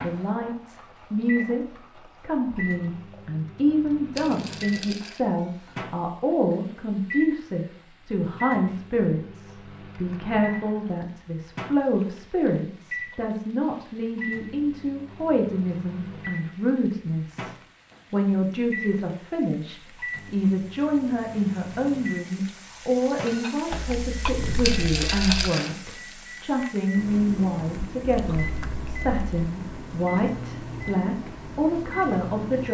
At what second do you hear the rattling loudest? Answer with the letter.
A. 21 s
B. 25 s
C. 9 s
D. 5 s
B.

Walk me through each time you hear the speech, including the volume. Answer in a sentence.
The speech can be heard from 0.0 to 32.6 s, at a steady volume.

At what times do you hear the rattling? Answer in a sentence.
The rattling can be heard from 4.2 to 5.2 s and from 24.6 to 25.7 s.